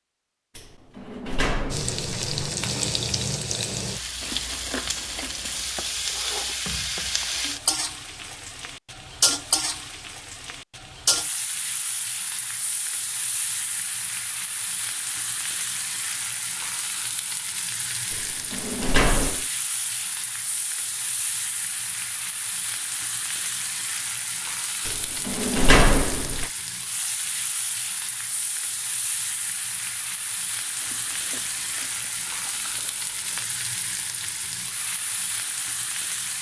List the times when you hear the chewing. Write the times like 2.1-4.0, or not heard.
4.2-5.8, 30.8-33.5.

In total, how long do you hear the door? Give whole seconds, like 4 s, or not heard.
5 s.